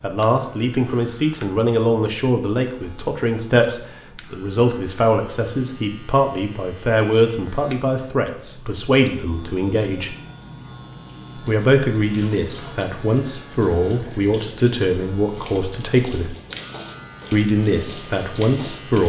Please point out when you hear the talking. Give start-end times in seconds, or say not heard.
0.0-10.2, 11.3-16.4, 17.3-19.0.